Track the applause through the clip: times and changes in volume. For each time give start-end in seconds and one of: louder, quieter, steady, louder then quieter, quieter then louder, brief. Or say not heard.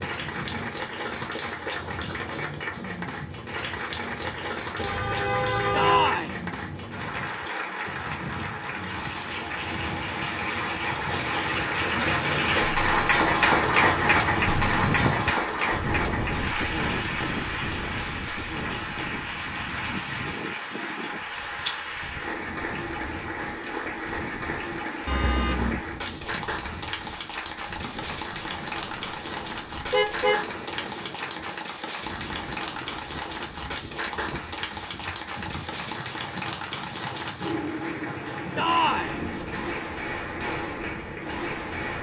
0.0-41.9 louder then quieter.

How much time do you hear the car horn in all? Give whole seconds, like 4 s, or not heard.
3 s.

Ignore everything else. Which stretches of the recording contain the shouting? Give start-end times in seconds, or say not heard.
5.7-6.3, 38.5-39.1.